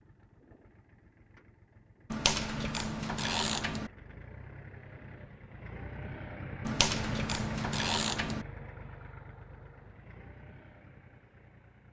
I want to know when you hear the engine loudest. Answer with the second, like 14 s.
7 s.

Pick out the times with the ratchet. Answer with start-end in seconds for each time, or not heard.
2.1-3.9, 6.7-8.4.